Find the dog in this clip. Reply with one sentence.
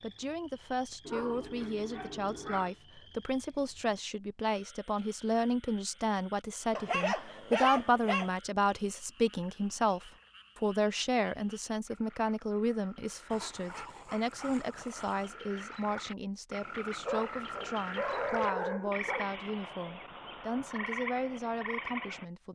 You can hear the dog from 1.1 to 2.8 s, from 6.8 to 8.3 s, from 13.3 to 15.3 s and from 17.0 to 19.3 s.